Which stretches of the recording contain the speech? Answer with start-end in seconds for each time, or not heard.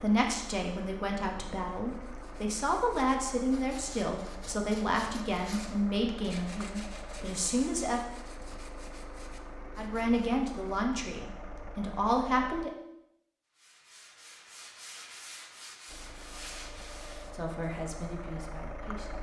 0.0-8.0, 9.8-12.7, 17.4-19.1.